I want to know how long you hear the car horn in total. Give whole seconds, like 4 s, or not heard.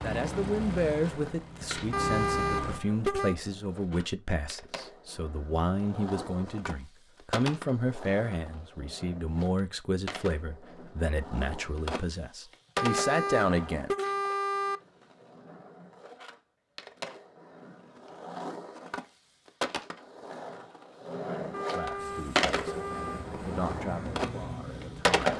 5 s.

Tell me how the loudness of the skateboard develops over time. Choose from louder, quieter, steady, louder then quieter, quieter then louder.
louder.